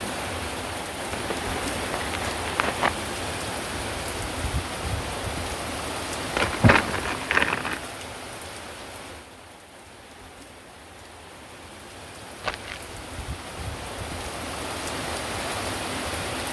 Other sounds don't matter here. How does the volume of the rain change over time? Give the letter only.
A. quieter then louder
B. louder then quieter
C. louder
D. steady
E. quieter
A.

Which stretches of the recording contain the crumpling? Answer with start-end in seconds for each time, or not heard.
1.1-2.9, 6.3-7.8, 12.4-12.9.